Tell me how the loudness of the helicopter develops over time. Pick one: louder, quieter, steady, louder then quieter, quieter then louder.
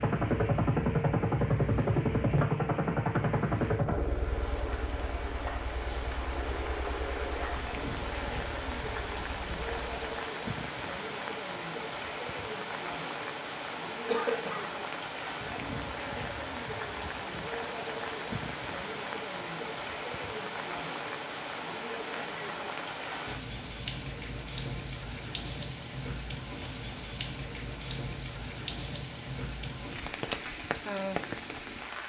quieter.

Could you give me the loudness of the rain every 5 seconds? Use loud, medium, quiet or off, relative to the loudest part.
medium, loud, loud, loud, loud, loud, loud.